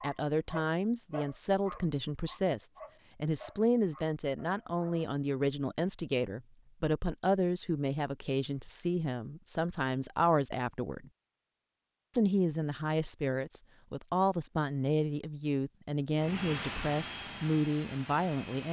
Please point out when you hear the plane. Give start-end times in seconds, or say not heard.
16.1-18.6.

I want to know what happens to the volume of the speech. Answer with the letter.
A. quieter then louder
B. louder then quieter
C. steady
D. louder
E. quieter
C.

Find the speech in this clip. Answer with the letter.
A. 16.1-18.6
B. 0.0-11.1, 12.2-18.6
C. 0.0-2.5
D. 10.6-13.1
B.